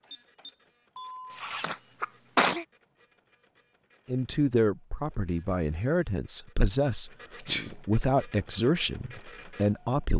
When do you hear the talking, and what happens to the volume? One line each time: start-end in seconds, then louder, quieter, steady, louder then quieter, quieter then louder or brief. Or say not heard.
4.0-10.1 steady.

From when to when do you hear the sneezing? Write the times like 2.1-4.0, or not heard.
1.3-2.6, 7.3-7.8.